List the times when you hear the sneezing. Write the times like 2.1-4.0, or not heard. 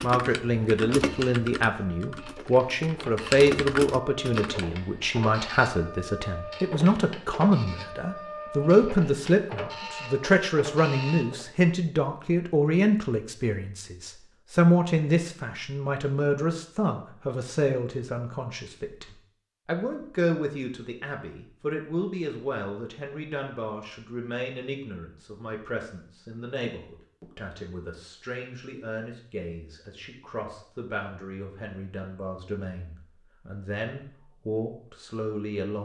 not heard.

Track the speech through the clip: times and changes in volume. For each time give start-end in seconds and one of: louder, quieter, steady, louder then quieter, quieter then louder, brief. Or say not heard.
0.0-35.8 quieter.